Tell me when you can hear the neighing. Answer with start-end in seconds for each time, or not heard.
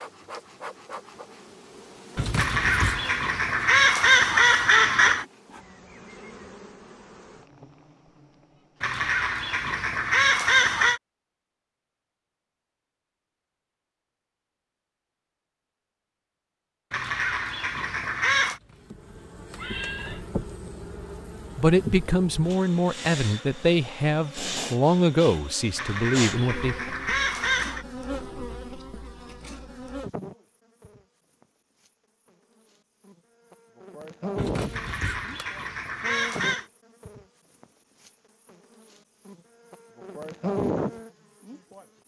2.1-3.1, 18.6-20.2, 34.4-35.5.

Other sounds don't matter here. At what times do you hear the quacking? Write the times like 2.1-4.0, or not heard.
2.4-5.2, 8.8-11.0, 16.9-18.6, 25.8-27.9, 34.7-36.6.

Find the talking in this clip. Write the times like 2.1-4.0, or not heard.
21.6-26.8.